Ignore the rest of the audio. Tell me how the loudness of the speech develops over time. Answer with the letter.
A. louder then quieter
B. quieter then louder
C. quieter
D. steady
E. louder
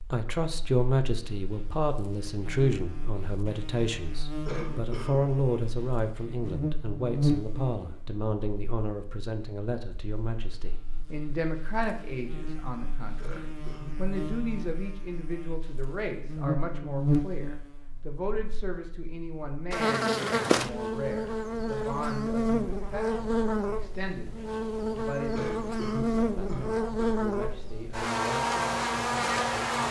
C.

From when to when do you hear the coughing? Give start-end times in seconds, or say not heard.
4.5-5.2, 13.2-13.9, 25.3-27.2.